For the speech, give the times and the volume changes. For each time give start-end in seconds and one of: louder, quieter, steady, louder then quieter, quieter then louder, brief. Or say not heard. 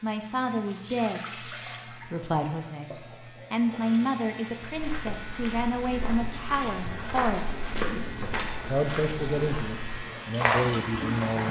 0.0-11.4 steady.